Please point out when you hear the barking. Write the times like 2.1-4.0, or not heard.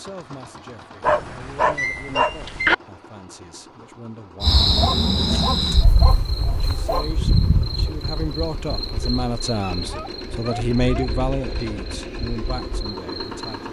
1.0-2.8, 4.7-7.1, 9.8-11.2.